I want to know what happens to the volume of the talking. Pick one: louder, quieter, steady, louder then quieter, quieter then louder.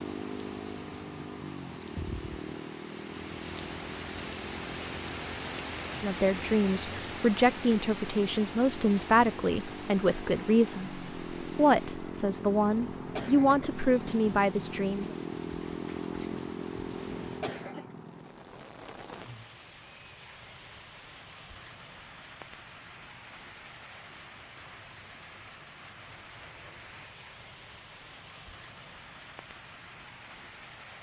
steady.